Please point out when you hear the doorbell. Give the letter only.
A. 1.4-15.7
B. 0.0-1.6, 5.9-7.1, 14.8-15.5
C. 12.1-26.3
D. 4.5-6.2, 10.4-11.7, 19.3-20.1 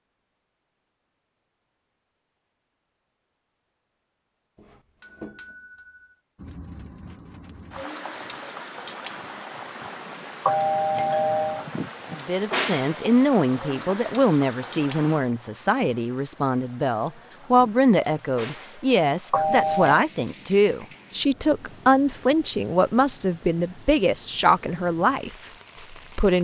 D.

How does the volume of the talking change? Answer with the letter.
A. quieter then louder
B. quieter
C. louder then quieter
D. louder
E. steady
E.